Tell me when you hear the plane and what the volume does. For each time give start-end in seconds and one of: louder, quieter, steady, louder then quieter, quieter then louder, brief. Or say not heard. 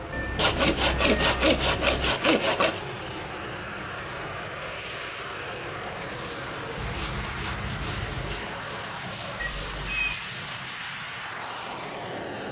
0.0-12.4 steady.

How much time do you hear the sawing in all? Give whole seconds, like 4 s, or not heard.
4 s.